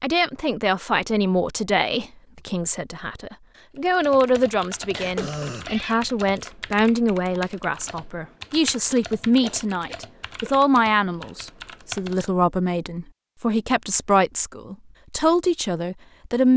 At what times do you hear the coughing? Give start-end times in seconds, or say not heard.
4.9-6.0, 9.4-10.6.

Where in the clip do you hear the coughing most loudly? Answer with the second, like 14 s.
5 s.